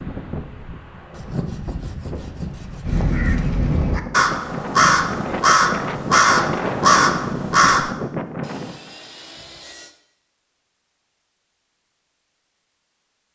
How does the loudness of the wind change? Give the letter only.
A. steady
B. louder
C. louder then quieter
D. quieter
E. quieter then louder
B.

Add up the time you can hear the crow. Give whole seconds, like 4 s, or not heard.
5 s.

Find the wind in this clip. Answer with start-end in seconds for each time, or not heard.
0.0-8.9.